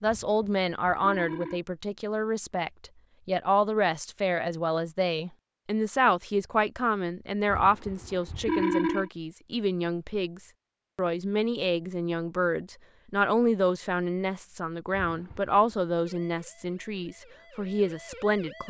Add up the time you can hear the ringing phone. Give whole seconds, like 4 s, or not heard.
4 s.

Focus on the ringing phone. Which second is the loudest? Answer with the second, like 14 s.
9 s.